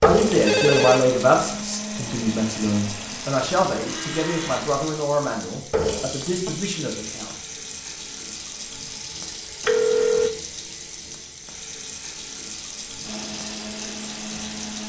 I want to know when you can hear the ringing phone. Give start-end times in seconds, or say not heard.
0.1-1.1, 9.6-10.3.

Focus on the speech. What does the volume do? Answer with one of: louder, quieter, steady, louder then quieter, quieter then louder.
quieter.